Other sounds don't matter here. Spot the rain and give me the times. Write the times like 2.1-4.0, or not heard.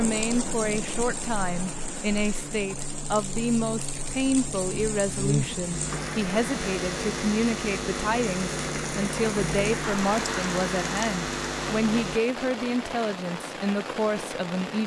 0.0-14.8.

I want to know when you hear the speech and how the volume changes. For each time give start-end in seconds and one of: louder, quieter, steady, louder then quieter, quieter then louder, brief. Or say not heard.
0.0-14.8 steady.